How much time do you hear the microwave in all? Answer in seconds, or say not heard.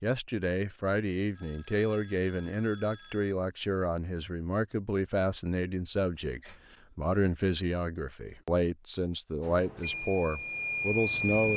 2 s.